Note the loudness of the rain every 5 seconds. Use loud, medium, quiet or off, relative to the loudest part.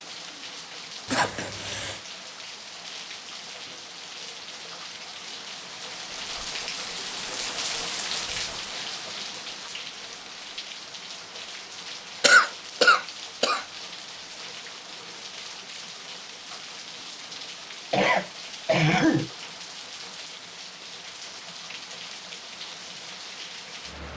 medium, loud, medium, medium, medium.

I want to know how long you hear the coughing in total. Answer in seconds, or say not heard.
4 s.